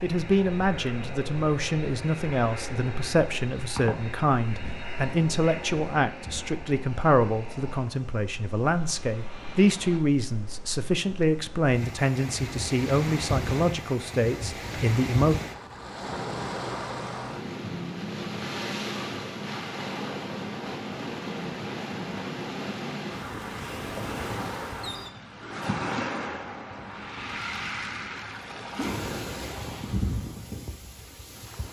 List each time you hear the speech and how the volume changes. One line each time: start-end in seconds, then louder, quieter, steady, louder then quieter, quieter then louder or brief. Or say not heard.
0.0-15.3 steady.